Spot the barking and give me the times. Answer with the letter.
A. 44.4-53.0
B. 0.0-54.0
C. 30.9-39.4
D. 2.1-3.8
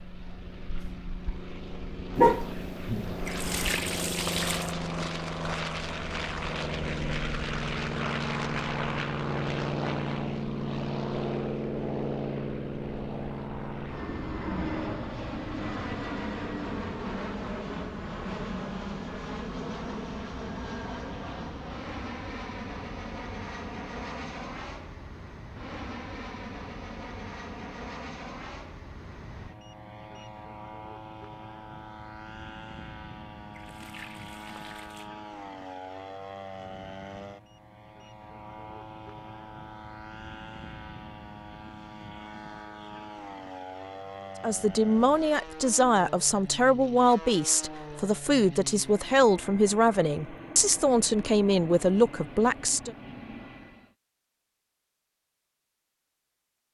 D.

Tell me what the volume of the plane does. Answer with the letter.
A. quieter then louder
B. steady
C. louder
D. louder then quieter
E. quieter
E.